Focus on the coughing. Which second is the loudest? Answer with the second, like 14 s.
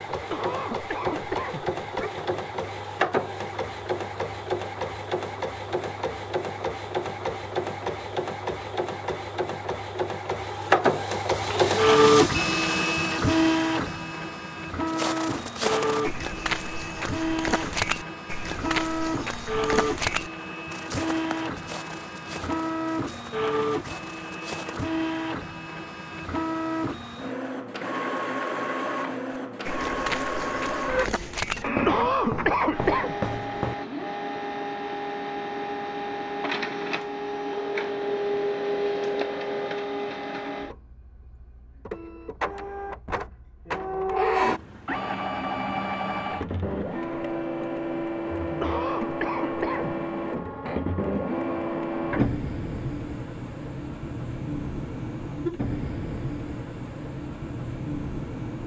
32 s.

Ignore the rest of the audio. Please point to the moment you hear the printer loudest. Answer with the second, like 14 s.
12 s.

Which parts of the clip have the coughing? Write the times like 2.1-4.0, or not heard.
0.1-2.1, 31.6-33.1, 48.4-50.0.